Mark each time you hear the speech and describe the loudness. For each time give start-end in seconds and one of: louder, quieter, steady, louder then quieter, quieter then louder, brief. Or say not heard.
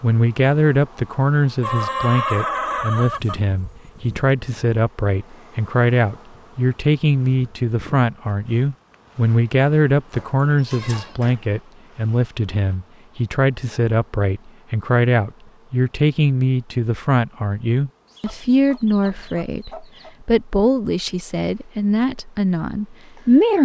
0.0-23.5 steady.